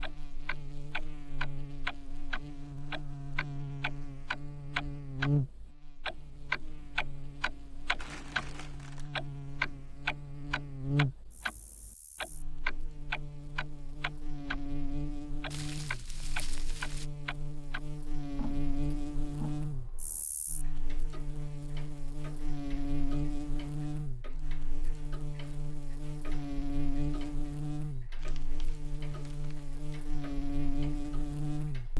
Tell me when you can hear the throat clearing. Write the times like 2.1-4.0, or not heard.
not heard.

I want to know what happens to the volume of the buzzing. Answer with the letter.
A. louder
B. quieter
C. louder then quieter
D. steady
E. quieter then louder
D.